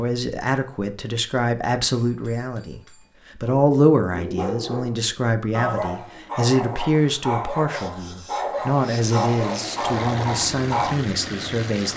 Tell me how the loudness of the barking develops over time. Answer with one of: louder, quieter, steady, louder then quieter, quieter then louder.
steady.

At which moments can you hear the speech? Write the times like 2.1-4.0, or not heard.
0.0-11.9.